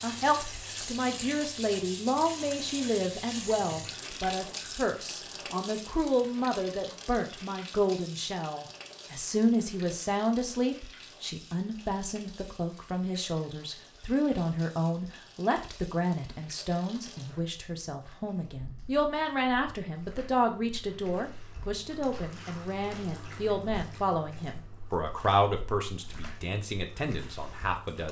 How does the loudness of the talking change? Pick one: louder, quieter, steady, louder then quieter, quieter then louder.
steady.